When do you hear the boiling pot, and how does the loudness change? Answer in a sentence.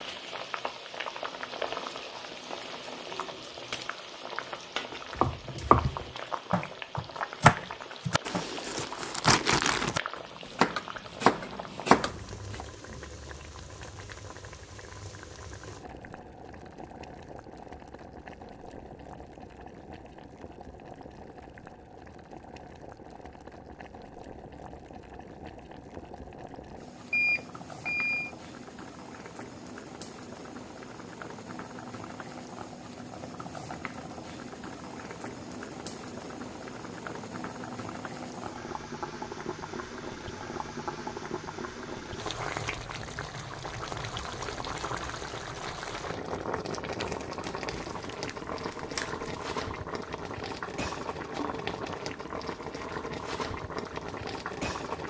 You can hear the boiling pot from 0.0 to 55.0 s, getting quieter then louder.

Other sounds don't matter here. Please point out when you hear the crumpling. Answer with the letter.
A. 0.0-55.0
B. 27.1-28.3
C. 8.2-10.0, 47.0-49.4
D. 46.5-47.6
C.